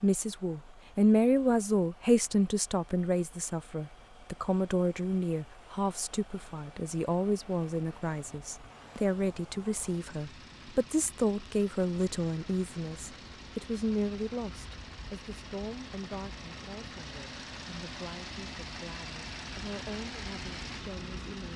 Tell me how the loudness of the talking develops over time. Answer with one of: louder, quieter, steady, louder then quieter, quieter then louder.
quieter.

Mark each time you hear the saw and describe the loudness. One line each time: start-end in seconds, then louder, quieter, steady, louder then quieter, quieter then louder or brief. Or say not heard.
not heard.